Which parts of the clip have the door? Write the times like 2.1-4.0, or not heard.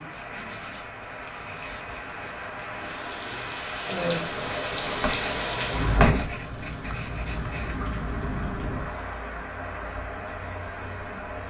not heard.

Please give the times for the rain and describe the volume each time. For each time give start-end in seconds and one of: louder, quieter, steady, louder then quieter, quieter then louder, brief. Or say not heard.
0.0-11.4 louder then quieter.